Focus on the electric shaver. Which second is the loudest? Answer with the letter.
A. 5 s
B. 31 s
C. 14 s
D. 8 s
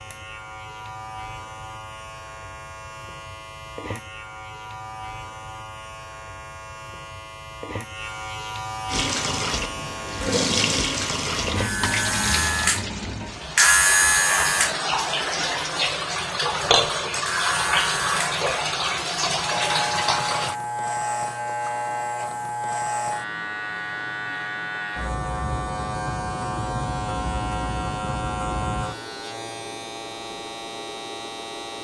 C.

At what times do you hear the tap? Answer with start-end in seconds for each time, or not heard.
8.8-20.6.